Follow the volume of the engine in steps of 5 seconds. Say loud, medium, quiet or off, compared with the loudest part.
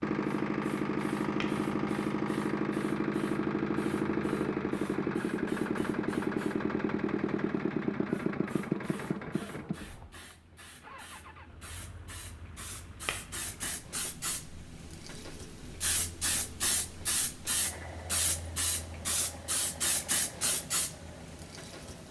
loud, loud, quiet, quiet, quiet.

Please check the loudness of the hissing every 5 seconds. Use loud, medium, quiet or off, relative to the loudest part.
quiet, quiet, medium, loud, loud.